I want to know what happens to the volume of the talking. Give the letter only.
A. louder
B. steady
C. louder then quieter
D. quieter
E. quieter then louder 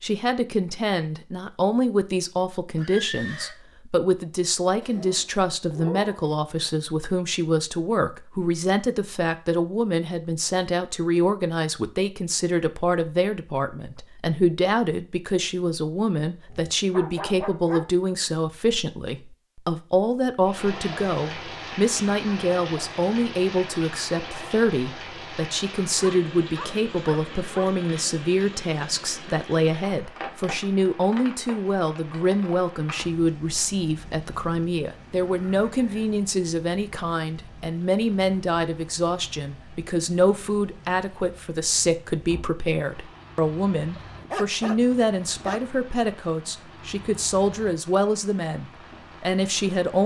B.